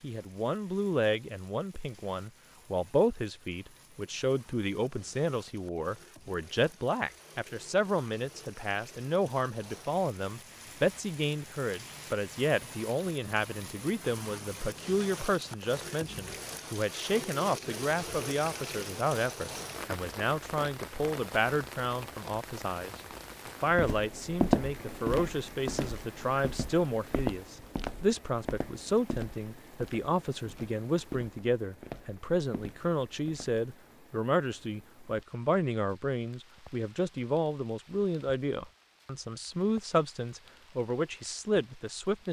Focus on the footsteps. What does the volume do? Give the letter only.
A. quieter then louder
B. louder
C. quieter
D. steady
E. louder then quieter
C.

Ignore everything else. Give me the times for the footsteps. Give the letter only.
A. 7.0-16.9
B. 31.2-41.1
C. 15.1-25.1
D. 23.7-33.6
D.